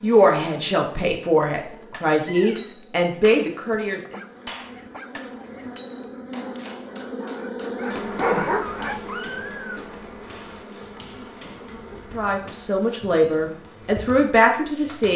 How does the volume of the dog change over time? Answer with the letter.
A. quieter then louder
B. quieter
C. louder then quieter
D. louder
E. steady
D.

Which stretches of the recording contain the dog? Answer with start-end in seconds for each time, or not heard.
3.7-9.0.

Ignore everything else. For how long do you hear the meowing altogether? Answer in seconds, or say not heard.
2 s.